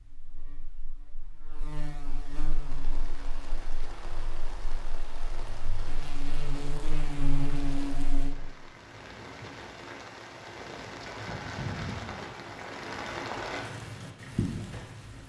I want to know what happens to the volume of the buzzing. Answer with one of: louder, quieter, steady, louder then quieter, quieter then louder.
quieter then louder.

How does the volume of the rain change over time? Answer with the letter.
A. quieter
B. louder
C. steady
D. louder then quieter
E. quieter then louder
B.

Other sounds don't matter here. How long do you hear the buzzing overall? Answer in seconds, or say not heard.
8 s.